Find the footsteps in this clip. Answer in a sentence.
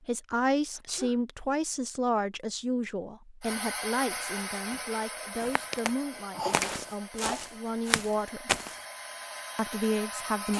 The footsteps can be heard from 4.0 to 8.8 s.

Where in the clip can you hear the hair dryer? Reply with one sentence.
The hair dryer can be heard from 3.4 to 10.5 s.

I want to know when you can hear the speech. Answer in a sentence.
The speech can be heard from 0.1 to 8.6 s and from 9.6 to 10.5 s.